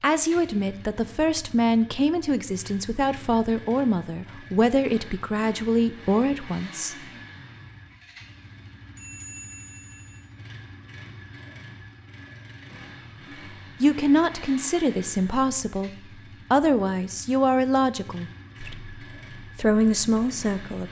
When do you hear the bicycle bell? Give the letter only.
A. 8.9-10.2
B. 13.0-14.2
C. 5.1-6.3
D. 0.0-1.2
A.